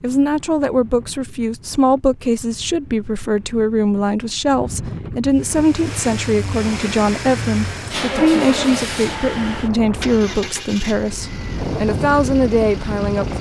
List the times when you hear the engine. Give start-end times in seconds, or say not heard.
5.3-13.3.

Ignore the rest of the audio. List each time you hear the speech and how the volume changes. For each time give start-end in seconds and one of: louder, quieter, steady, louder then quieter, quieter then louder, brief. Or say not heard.
0.0-13.3 steady.